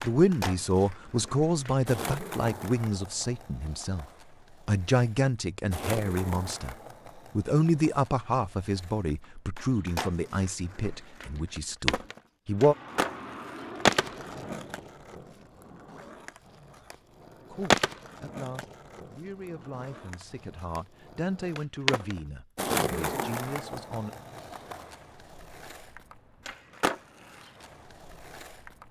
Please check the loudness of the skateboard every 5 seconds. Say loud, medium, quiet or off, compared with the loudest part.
medium, medium, loud, loud, loud, medium.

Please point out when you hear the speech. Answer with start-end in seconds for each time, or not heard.
0.0-4.0, 4.7-12.8, 17.5-24.1.